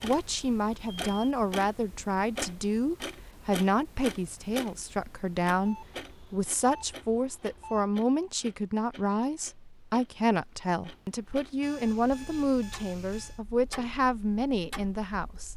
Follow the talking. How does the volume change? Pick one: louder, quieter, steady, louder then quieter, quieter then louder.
steady.